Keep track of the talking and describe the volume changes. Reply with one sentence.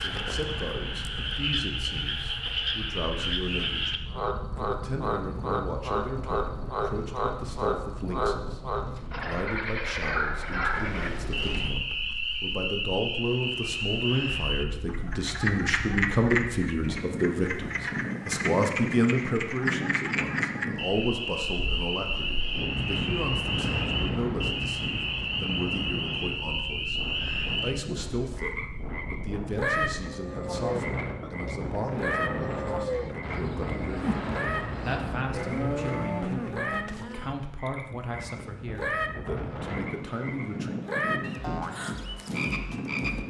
The loudness of the talking goes up, then down.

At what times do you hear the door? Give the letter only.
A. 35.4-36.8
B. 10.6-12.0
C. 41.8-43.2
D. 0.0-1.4
B.